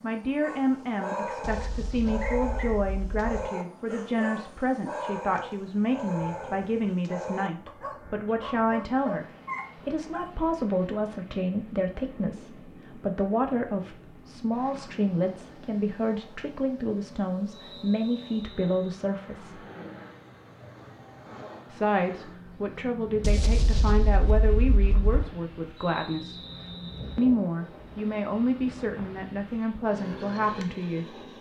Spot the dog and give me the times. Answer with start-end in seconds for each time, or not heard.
0.4-10.2.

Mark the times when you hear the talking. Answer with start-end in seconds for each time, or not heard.
0.0-19.6, 21.7-26.4, 27.1-31.1.